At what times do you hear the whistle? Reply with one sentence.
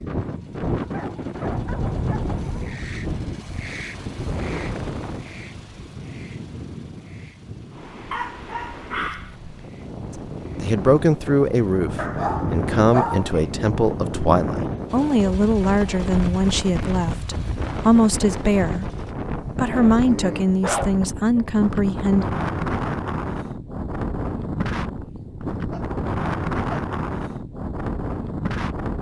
The whistle can't be heard in this clip.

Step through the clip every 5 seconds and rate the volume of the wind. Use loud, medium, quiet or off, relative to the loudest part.
loud, medium, loud, loud, loud, loud.